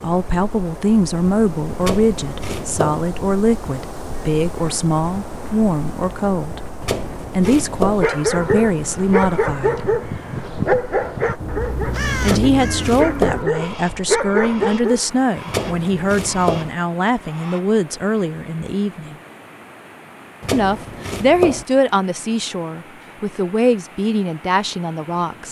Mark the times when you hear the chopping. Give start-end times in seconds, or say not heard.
1.8-3.0, 6.8-8.1, 12.2-13.4, 15.4-16.7, 20.4-21.6.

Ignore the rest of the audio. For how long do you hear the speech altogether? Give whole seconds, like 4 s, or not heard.
21 s.